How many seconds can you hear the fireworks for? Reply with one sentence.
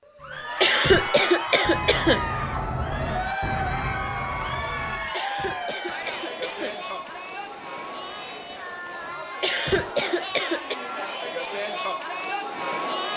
The fireworks can be heard for 9 seconds in total.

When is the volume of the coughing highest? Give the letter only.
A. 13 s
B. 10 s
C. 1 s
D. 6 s
C.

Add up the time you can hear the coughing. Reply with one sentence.
The coughing can be heard for 5 seconds in total.